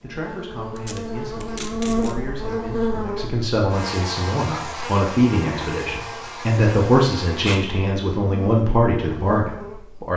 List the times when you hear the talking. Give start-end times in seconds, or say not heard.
0.0-10.1.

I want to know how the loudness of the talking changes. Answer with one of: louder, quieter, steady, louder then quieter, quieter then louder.
louder.